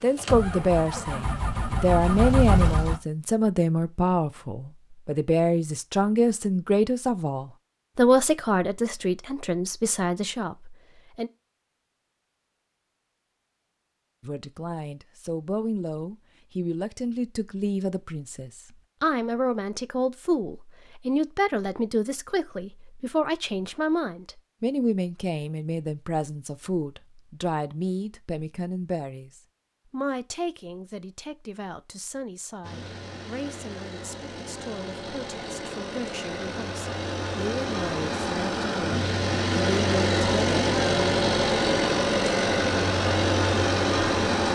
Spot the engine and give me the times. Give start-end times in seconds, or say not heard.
0.0-3.0, 32.6-44.5.